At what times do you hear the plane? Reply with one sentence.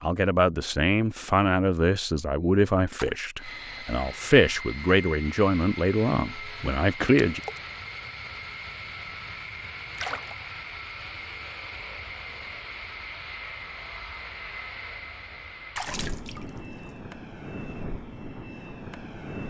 The plane can be heard from 3.4 to 19.4 s.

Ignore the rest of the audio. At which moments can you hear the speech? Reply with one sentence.
You can hear the speech from 0.0 to 7.4 s.